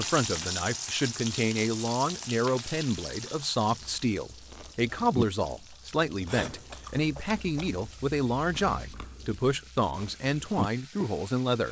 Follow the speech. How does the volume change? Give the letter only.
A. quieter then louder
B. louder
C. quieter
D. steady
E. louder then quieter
D.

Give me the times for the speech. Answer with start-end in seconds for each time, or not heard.
0.0-11.6.